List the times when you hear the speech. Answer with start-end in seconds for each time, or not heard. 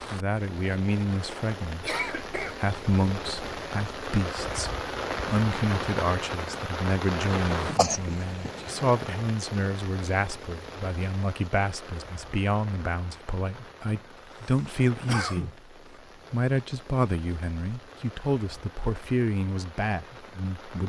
0.1-15.5, 16.3-20.8.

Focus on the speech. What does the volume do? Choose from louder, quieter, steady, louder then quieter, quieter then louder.
steady.